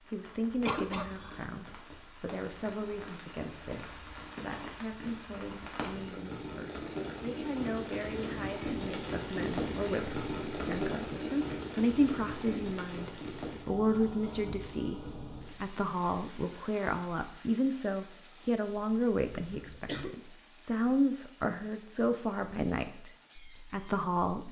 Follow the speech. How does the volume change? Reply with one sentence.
The loudness of the speech goes up.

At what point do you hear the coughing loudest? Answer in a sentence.
The loudest moment of the coughing is at 1 second.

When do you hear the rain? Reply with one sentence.
The rain can be heard from 0.0 to 24.4 s.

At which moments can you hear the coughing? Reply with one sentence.
You can hear the coughing from 0.7 to 1.4 s and from 19.4 to 20.1 s.